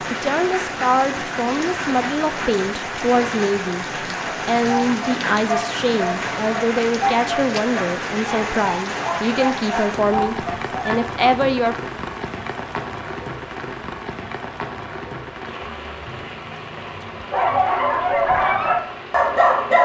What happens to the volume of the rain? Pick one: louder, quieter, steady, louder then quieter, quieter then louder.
quieter.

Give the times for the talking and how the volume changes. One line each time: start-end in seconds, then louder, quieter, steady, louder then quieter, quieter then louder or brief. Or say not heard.
0.1-11.8 steady.